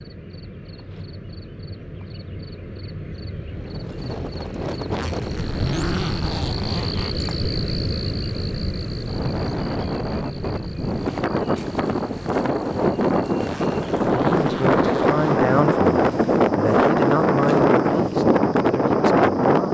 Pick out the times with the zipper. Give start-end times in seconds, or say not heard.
4.9-7.3, 13.4-15.2.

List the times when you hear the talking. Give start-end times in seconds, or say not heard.
14.3-19.6.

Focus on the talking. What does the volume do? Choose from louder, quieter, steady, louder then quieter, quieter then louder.
quieter.